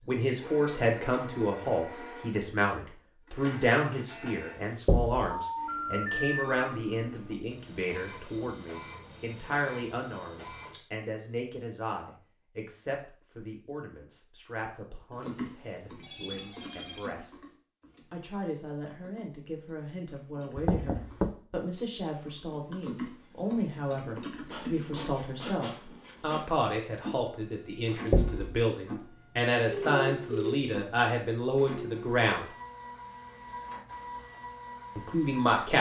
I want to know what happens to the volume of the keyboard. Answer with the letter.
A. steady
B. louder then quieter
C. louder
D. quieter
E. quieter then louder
E.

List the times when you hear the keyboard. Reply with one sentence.
The keyboard can be heard from 15.1 to 25.1 s.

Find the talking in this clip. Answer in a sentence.
The talking can be heard from 0.1 to 17.3 s, from 18.1 to 32.5 s and from 35.0 to 35.7 s.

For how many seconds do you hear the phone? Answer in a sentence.
You can hear the phone for 3 seconds altogether.